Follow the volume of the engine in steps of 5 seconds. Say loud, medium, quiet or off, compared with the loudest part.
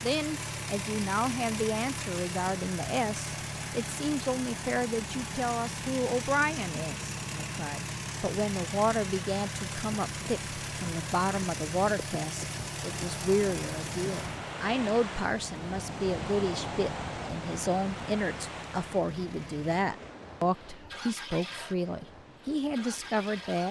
loud, loud, loud, medium, medium.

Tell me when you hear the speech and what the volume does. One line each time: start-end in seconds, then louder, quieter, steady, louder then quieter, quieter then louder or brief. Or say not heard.
0.0-23.6 steady.